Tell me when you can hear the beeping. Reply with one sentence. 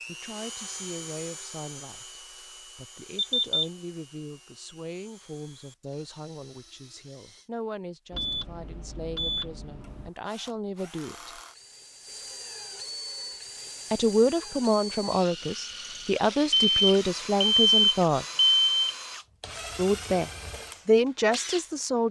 The beeping can be heard from 3.1 to 3.6 s, from 8.1 to 10.1 s and from 16.5 to 18.9 s.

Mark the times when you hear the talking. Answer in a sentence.
You can hear the talking from 0.1 to 11.4 s, from 13.9 to 18.2 s and from 19.8 to 22.0 s.